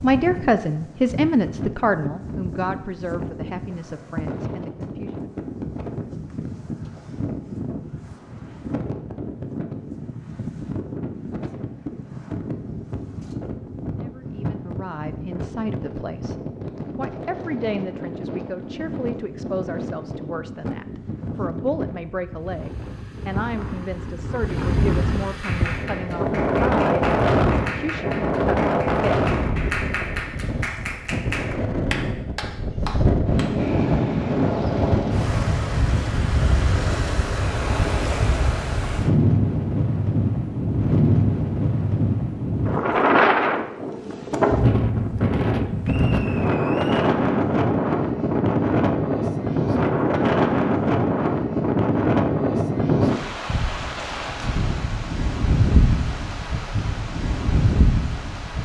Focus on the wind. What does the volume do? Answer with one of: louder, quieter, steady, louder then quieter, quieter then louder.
louder.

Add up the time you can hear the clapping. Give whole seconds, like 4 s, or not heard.
8 s.